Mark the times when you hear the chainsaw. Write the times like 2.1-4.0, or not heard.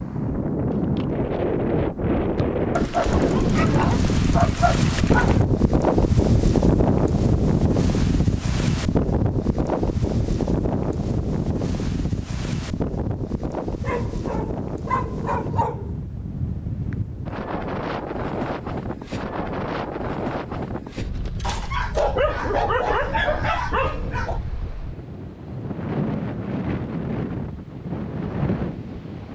not heard.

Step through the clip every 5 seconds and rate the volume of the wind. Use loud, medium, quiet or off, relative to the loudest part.
loud, loud, medium, medium, quiet, medium.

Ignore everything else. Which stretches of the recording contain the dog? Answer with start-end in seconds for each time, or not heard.
2.8-5.5, 13.8-16.0, 21.4-24.4.